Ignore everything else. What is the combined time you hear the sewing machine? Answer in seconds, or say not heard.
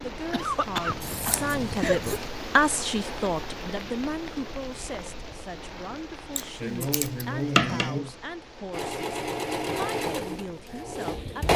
3 s.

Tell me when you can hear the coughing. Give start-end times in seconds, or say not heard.
0.3-2.3, 6.6-8.2.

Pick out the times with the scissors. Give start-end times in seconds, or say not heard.
0.8-2.2, 6.3-8.0.